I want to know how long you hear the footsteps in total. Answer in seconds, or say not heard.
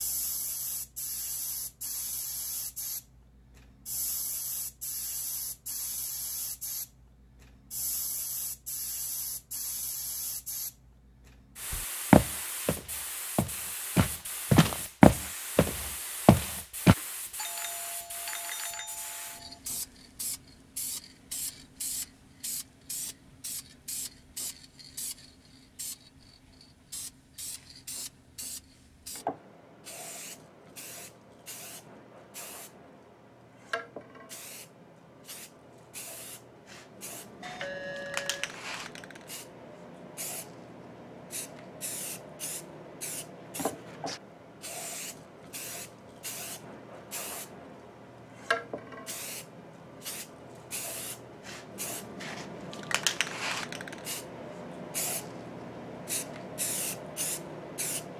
5 s.